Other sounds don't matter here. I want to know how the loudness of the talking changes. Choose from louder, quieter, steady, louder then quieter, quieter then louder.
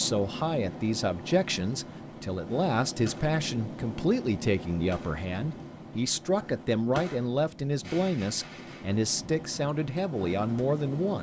steady.